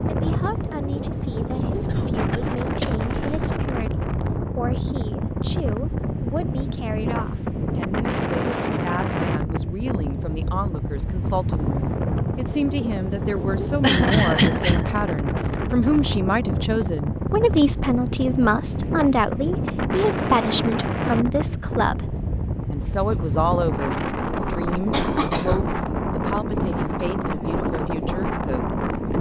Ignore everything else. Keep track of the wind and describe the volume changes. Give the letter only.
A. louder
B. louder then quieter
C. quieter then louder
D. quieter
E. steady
E.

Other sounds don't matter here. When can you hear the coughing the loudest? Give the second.
14 s.